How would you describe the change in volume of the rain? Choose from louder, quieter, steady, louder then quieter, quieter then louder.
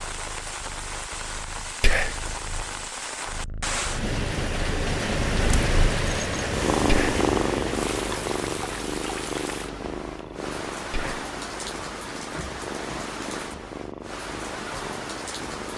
louder then quieter.